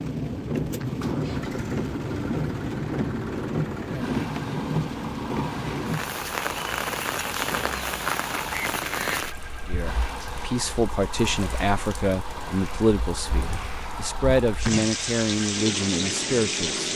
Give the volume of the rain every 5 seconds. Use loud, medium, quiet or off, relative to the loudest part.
loud, loud, medium, loud.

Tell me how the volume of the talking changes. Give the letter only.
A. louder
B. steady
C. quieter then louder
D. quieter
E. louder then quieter
B.